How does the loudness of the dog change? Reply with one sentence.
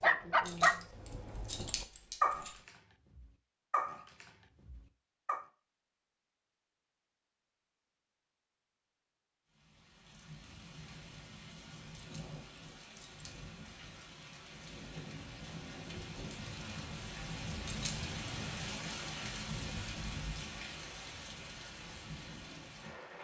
The loudness of the dog goes down.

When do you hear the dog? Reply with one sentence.
You can hear the dog from 0.0 to 5.5 s.